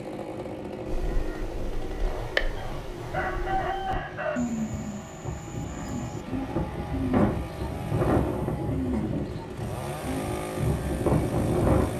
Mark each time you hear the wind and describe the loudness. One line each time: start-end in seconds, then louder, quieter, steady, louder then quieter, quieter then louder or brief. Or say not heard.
0.0-11.9 louder.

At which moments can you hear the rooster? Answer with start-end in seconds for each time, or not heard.
2.5-4.4.